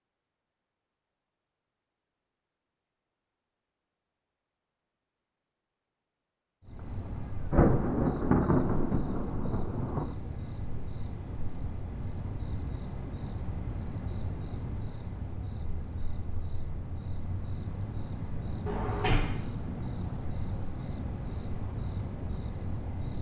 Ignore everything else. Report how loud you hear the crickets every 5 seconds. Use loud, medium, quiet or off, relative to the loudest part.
off, loud, loud, loud, loud.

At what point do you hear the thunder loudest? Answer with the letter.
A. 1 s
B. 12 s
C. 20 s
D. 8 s
D.